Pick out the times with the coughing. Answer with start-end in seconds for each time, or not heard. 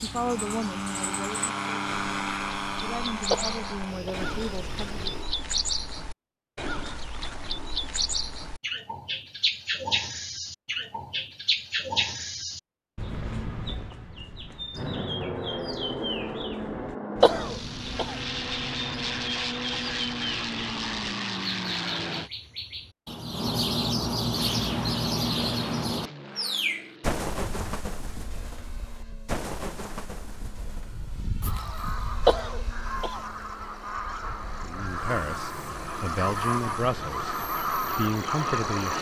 3.3-4.2, 17.2-18.1, 32.2-33.2.